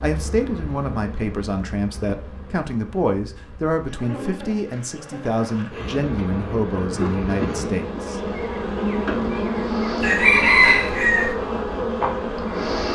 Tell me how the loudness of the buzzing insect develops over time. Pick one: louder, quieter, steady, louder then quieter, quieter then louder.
louder.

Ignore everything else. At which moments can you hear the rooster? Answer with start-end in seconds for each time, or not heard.
10.0-11.3.